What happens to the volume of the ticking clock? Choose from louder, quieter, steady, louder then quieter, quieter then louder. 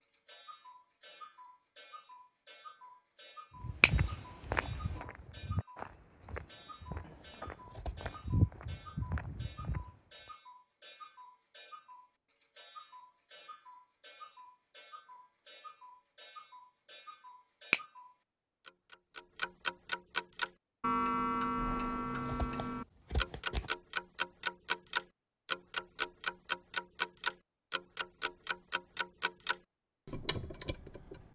louder.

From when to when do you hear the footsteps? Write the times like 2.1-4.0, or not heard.
3.6-9.9.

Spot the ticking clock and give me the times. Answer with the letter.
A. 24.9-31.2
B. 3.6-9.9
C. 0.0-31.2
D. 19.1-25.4
C.